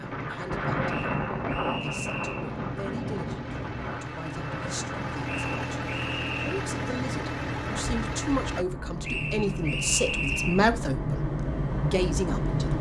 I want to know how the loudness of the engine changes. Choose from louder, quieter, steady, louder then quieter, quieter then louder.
louder.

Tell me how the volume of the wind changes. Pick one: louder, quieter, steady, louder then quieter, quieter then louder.
quieter then louder.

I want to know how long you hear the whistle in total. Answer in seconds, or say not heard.
5 s.